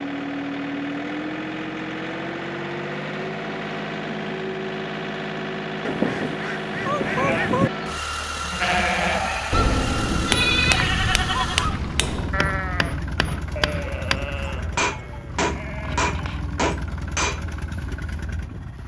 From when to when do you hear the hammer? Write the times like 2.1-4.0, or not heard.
10.2-17.4.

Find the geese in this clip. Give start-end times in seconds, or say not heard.
5.8-7.7, 9.5-12.2.